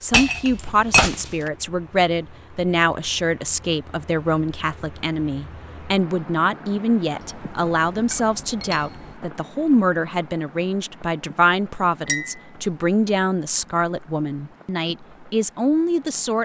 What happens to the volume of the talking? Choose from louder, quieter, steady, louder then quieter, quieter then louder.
steady.